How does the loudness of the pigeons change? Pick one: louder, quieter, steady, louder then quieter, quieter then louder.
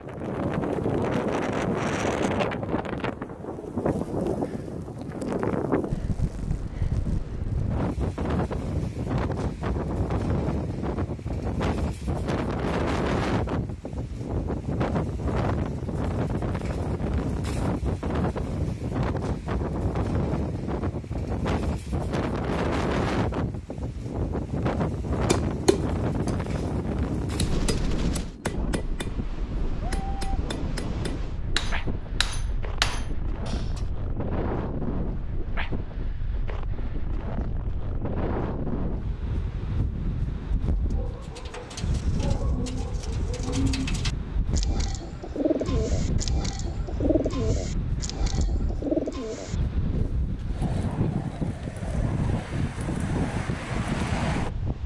louder.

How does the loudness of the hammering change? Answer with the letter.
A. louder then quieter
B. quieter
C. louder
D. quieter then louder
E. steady
D.